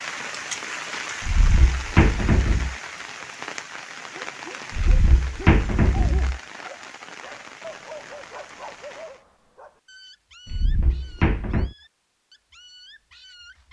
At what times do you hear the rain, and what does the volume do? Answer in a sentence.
You can hear the rain from 0.0 to 9.2 s, getting quieter.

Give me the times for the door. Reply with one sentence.
The door can be heard from 1.2 to 2.8 s, from 4.7 to 6.4 s and from 10.4 to 11.8 s.